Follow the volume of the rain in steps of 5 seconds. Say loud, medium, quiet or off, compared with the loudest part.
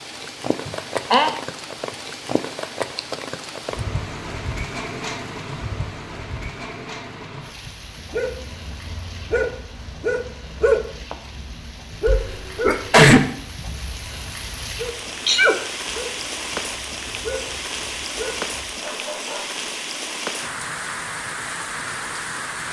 loud, medium, medium, loud, loud.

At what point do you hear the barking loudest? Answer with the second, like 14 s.
11 s.